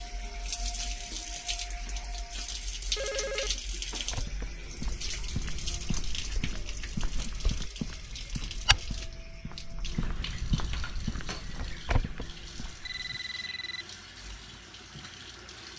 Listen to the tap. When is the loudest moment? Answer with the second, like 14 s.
3 s.